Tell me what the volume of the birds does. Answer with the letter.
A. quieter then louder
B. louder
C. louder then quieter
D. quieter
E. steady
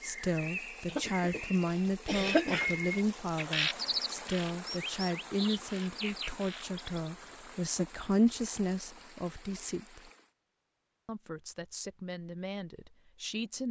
C.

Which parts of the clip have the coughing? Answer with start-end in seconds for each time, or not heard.
0.8-2.8.